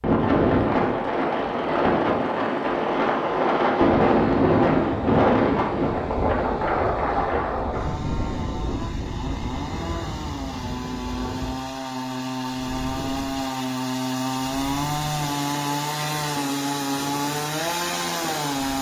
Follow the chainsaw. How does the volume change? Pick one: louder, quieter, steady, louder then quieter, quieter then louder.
louder.